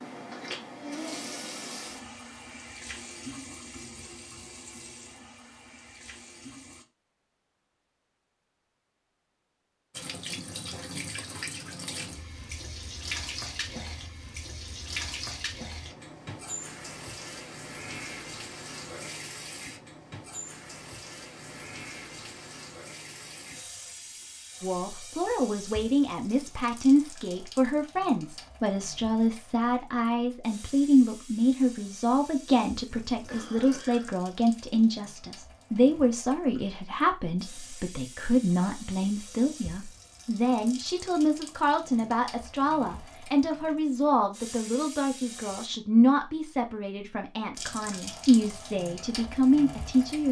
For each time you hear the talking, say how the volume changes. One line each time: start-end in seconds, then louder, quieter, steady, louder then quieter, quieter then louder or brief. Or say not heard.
24.6-50.2 steady.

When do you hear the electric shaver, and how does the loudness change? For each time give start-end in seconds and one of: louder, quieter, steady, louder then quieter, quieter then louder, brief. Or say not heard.
not heard.